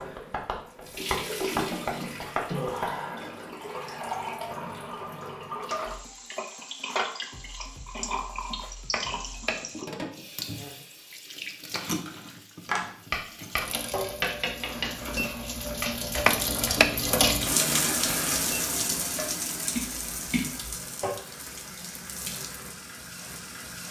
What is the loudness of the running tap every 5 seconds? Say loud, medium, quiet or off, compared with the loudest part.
medium, medium, medium, loud, medium.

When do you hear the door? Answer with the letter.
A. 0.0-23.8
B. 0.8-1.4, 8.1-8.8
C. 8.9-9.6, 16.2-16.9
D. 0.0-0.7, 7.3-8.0
C.